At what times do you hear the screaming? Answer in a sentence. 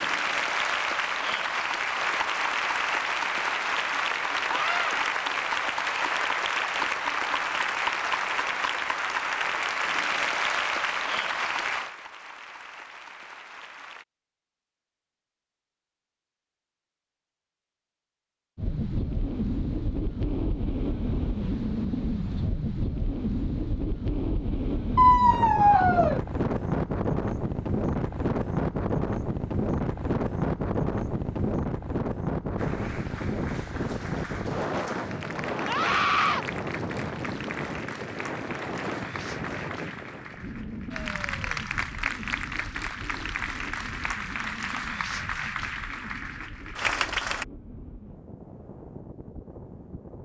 You can hear the screaming from 4.5 to 5.0 s, from 24.9 to 26.2 s and from 35.6 to 36.5 s.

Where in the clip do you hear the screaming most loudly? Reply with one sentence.
The volume of the screaming peaks at 25 seconds.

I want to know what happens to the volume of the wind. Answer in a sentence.
The loudness of the wind goes down.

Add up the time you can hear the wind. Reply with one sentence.
The wind can be heard for 32 seconds in total.